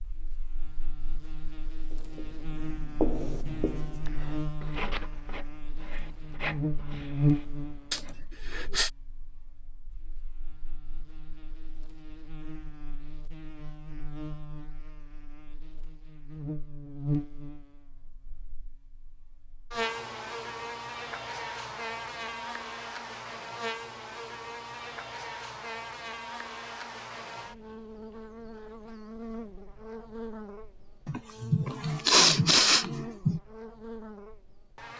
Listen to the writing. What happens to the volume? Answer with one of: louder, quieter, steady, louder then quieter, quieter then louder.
quieter.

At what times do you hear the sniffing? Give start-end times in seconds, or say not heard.
7.9-8.9, 31.1-33.4.